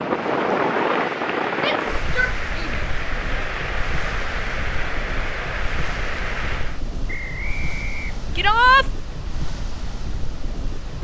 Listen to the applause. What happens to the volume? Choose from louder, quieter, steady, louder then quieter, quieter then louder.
steady.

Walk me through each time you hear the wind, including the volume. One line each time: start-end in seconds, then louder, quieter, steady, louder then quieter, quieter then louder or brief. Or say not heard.
0.0-10.9 quieter.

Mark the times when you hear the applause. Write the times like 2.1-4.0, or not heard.
0.0-6.8.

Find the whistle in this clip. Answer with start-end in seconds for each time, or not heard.
7.0-8.6.